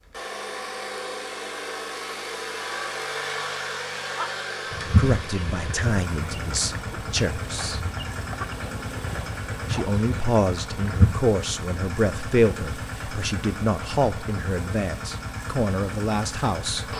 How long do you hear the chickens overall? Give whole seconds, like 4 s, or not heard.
7 s.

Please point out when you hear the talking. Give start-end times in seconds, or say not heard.
4.8-7.8, 9.7-16.9.